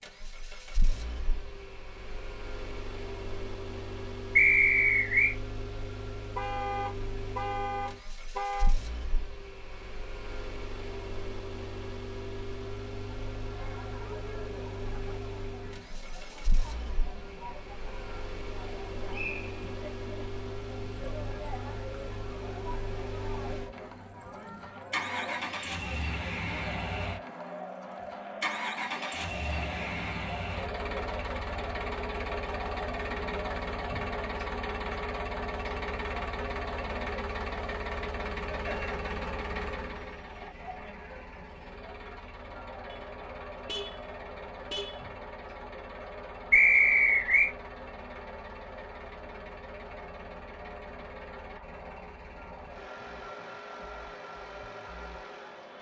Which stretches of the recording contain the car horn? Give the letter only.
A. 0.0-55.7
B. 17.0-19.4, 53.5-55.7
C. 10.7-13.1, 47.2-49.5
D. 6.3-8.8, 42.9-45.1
D.